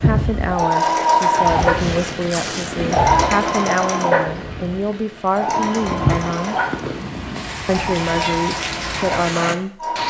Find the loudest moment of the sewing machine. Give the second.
1 s.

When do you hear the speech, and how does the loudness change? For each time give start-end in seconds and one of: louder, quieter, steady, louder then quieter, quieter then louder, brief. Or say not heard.
0.0-6.5 steady
7.7-10.0 brief.